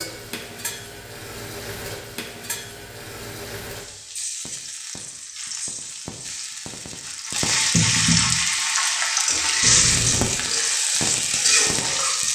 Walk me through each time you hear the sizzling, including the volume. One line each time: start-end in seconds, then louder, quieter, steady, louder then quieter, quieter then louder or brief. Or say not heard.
0.0-12.3 louder.